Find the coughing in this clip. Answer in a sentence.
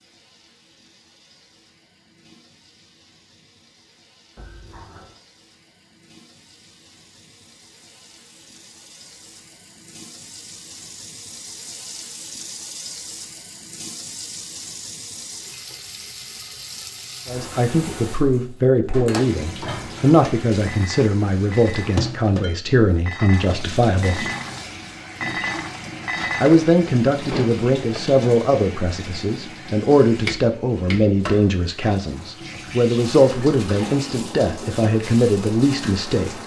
The coughing can be heard from 4.3 to 5.2 s.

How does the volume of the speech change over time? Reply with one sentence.
The volume of the speech stays about the same.